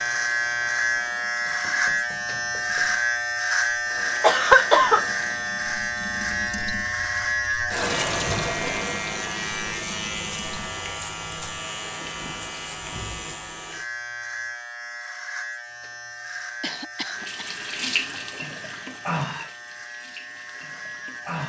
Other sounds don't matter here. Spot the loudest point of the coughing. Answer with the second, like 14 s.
5 s.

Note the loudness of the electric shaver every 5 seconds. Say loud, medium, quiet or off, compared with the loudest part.
loud, loud, medium, quiet, quiet.